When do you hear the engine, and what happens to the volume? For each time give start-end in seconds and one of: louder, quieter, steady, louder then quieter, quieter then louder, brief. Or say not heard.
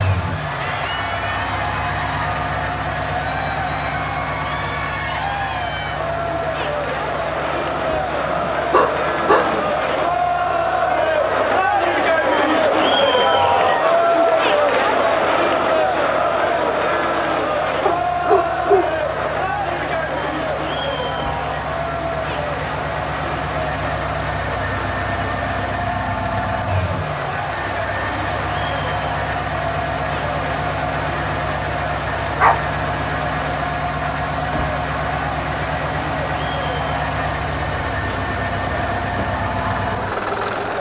0.0-40.7 quieter then louder.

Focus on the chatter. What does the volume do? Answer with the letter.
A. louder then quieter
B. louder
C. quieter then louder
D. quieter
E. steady
A.